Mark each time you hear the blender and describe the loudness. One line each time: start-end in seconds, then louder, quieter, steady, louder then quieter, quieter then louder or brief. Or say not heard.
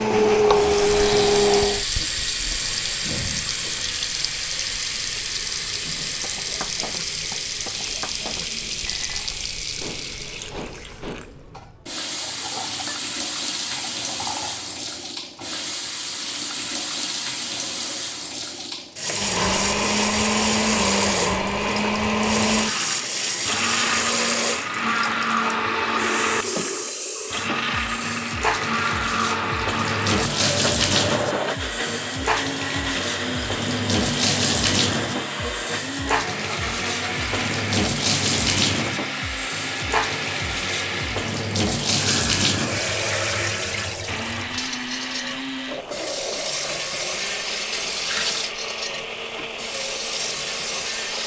0.0-1.9 brief
19.1-51.2 quieter.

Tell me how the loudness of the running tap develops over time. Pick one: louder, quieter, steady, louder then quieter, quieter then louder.
steady.